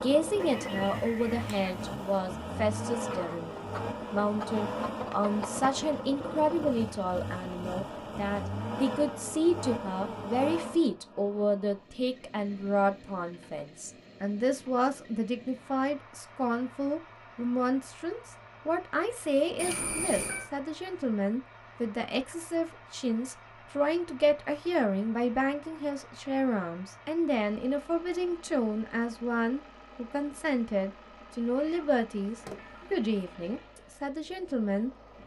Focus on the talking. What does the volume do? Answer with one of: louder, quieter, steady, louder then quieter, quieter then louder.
steady.